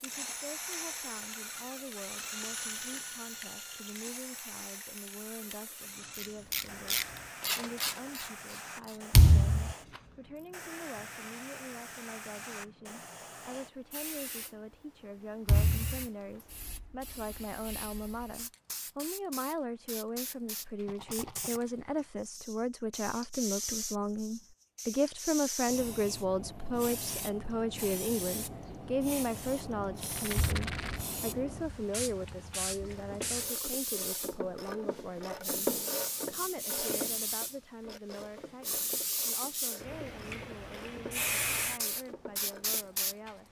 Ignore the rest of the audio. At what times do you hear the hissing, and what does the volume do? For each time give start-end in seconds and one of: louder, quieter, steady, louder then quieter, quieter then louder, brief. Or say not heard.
0.0-43.4 louder.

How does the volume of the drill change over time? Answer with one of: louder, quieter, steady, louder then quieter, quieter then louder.
quieter.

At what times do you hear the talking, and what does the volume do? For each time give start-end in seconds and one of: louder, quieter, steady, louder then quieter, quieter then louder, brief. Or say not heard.
0.0-43.4 louder then quieter.